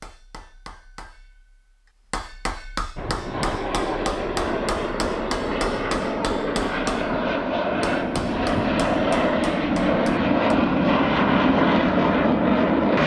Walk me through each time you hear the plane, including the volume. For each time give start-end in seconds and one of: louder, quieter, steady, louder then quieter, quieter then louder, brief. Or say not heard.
3.0-13.0 louder.